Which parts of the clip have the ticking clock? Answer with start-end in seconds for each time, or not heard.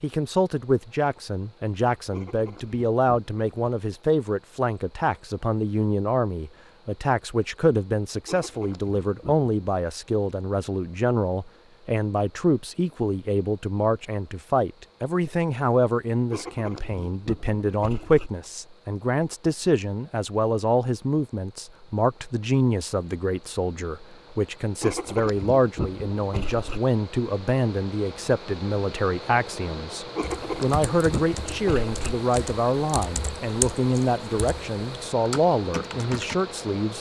not heard.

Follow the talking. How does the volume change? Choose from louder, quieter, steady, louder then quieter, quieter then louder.
steady.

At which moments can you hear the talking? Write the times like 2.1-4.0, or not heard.
0.0-36.9.